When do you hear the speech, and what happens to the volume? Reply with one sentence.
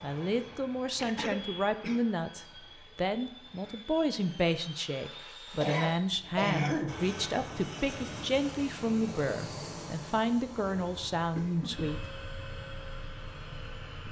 The speech can be heard from 0.0 to 12.1 s, at a steady volume.